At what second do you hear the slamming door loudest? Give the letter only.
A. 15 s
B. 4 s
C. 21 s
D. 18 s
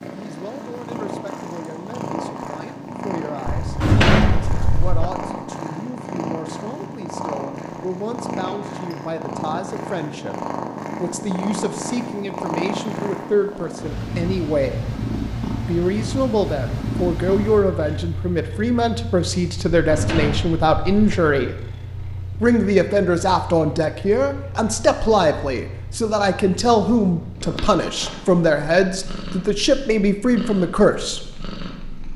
B.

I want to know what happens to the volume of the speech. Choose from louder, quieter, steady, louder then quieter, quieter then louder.
louder.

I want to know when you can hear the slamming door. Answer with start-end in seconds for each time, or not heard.
3.5-5.1, 19.8-21.1.